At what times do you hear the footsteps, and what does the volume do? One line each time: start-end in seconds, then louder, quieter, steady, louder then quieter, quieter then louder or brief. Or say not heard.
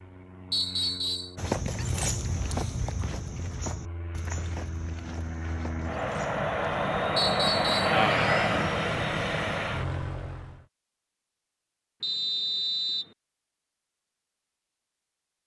1.4-7.0 quieter.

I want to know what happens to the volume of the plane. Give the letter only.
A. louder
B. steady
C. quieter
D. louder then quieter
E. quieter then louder
A.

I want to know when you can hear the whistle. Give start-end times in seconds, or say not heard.
0.5-1.4, 7.2-8.0, 12.0-13.1.